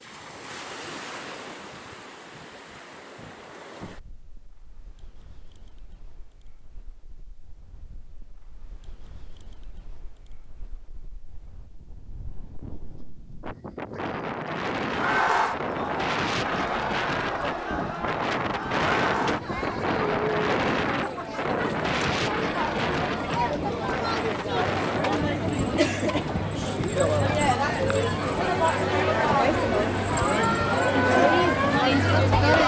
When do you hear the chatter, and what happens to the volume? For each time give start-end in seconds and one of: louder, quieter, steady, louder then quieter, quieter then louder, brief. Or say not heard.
14.9-32.6 louder.